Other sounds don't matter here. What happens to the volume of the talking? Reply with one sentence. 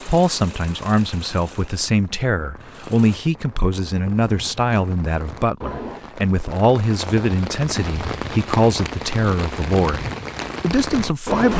The volume of the talking stays about the same.